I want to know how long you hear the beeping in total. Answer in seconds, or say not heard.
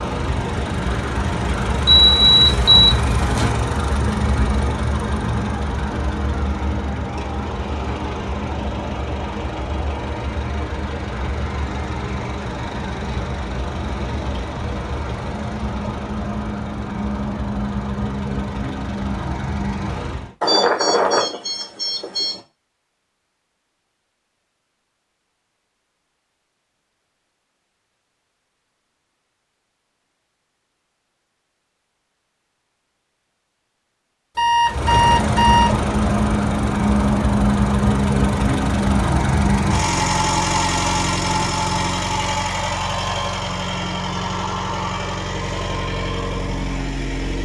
5 s.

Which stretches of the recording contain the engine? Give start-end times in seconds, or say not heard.
0.0-20.4, 34.6-47.4.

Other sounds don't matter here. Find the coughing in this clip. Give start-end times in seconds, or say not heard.
not heard.